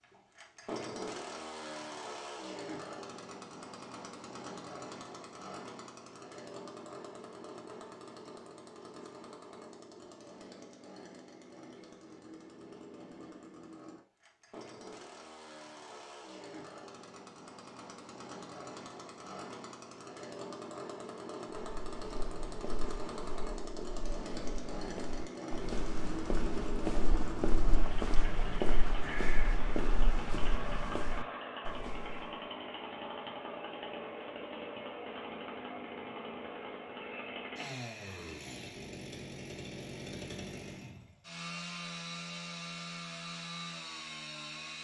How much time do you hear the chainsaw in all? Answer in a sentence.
The chainsaw can be heard for 45 seconds in total.